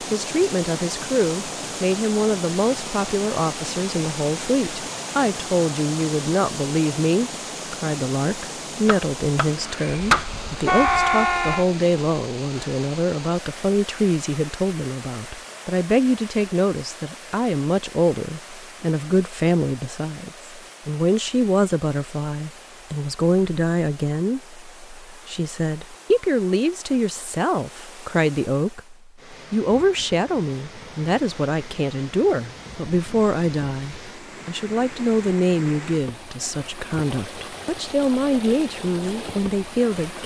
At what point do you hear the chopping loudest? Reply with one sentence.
The loudest moment of the chopping is at 11 seconds.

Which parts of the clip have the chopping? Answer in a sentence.
You can hear the chopping from 8.8 to 11.7 s.